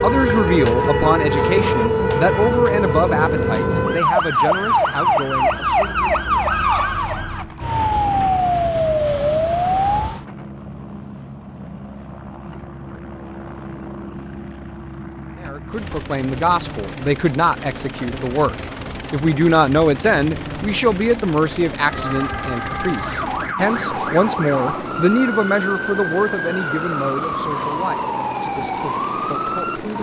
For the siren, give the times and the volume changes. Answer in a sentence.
The siren can be heard from 0.0 to 10.2 s, at a steady volume; and from 21.9 to 29.9 s, at a steady volume.